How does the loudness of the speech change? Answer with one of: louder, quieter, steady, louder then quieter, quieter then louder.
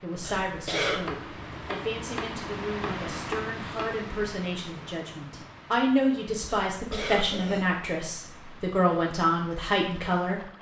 louder.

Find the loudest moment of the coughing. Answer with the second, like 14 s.
1 s.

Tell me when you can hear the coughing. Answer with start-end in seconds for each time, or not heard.
0.2-1.1, 6.7-7.7.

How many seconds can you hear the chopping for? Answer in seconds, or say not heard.
3 s.